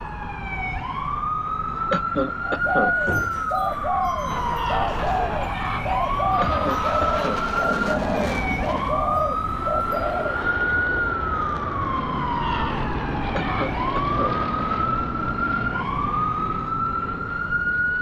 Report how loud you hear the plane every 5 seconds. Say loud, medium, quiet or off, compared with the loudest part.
medium, loud, loud, loud.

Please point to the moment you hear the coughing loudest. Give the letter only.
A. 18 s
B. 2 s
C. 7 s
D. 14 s
B.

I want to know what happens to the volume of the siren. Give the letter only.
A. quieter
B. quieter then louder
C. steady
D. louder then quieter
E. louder
C.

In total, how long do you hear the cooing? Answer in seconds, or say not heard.
8 s.